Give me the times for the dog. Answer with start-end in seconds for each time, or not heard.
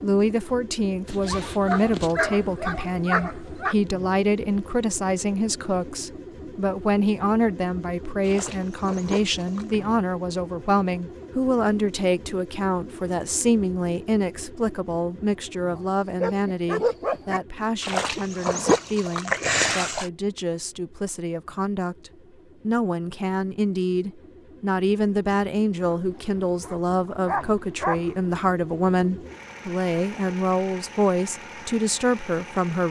1.1-3.8, 16.2-17.4, 25.9-28.1.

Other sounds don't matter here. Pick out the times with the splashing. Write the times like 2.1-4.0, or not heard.
8.2-9.8, 17.8-20.1.